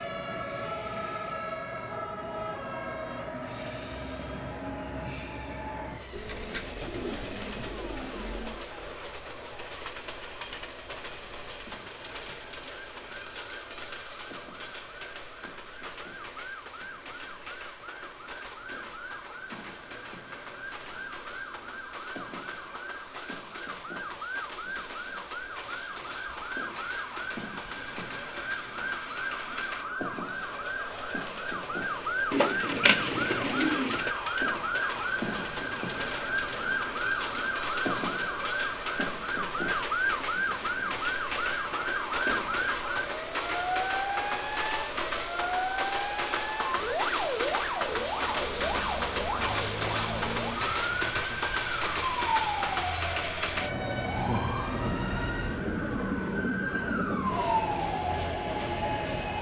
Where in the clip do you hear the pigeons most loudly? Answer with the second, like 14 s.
33 s.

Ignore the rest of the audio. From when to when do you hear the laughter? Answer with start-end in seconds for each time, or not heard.
not heard.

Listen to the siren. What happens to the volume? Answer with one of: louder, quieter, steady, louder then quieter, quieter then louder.
louder.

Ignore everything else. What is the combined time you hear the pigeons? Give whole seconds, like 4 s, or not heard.
4 s.